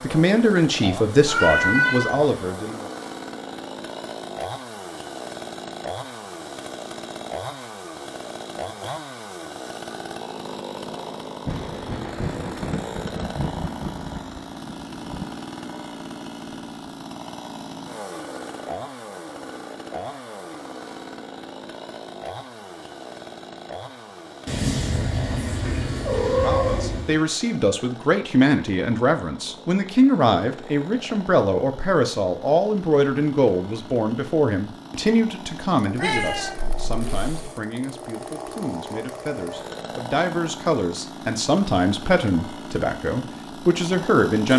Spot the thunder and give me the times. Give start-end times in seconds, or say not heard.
11.4-15.4.